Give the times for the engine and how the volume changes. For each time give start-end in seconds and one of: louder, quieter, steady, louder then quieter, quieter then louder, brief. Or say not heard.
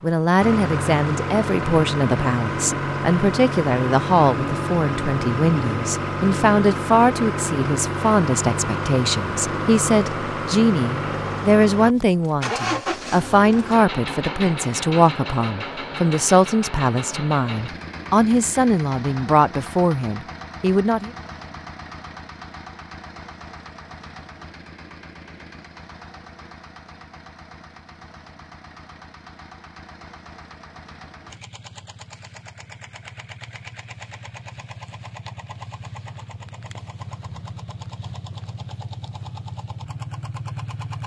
0.0-41.0 quieter then louder.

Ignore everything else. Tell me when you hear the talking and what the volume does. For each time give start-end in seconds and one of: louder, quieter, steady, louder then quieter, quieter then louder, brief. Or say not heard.
0.0-21.1 steady.